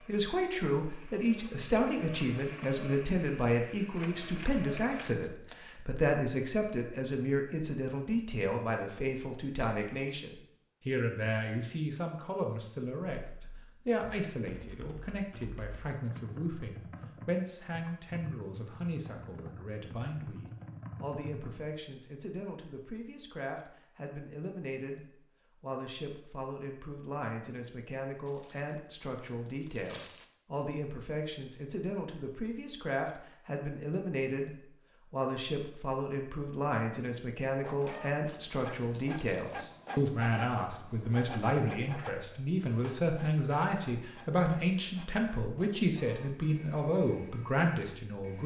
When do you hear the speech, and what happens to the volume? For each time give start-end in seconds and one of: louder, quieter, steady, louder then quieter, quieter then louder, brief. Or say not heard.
0.1-48.4 quieter then louder.